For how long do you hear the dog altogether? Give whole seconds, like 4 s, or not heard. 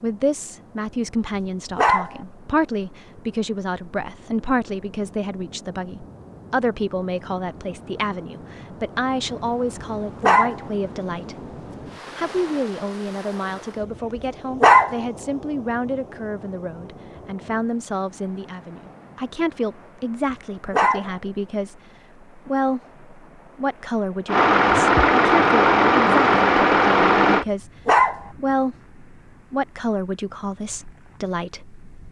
3 s.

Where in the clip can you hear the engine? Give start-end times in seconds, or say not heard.
24.2-27.4.